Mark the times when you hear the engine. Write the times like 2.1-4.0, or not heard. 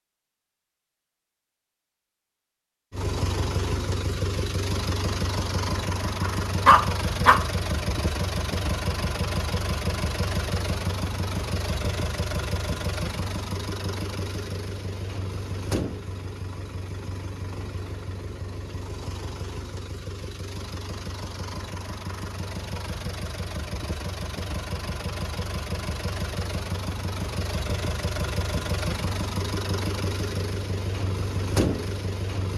2.9-32.5.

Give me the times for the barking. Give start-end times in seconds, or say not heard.
6.2-7.5.